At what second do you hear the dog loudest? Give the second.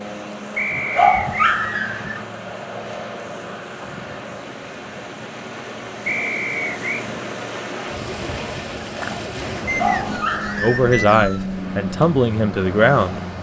1 s.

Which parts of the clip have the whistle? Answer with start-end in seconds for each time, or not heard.
0.6-1.6, 6.0-7.0, 9.7-11.4.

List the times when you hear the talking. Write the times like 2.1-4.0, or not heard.
10.6-13.2.